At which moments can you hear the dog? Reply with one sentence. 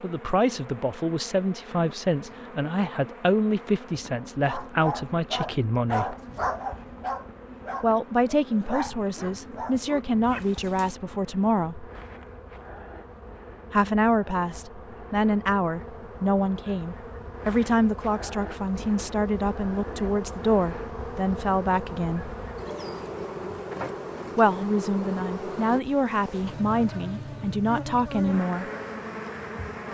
The dog can be heard from 4.2 to 10.9 s.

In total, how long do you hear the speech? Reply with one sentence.
The speech can be heard for 23 seconds in total.